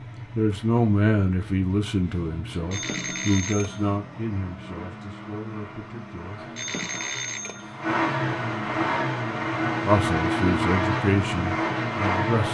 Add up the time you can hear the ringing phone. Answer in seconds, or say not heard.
3 s.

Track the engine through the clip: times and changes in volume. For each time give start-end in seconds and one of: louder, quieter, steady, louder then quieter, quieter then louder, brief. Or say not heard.
0.0-12.4 louder.